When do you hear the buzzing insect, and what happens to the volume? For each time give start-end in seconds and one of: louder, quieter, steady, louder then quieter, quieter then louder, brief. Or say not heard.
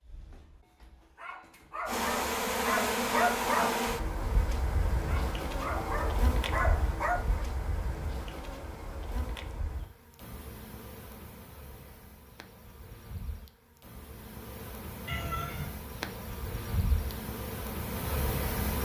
1.9-18.8 quieter then louder.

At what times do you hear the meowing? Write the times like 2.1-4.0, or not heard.
15.1-15.7.